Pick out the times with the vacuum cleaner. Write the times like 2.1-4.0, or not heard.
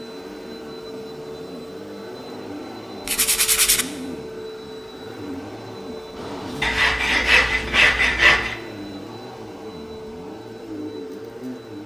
0.0-11.8.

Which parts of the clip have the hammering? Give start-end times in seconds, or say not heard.
not heard.